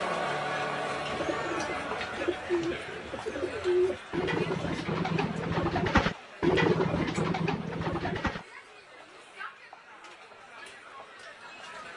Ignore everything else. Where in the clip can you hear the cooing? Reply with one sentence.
You can hear the cooing from 0.9 to 8.4 s.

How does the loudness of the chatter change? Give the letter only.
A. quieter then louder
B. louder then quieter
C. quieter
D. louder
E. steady
C.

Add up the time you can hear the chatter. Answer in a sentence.
The chatter can be heard for 12 seconds in total.